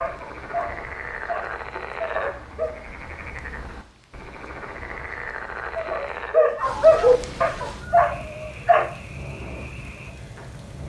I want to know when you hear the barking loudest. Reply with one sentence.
The volume of the barking peaks at 7 seconds.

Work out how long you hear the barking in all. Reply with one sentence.
The barking can be heard for 6 seconds in total.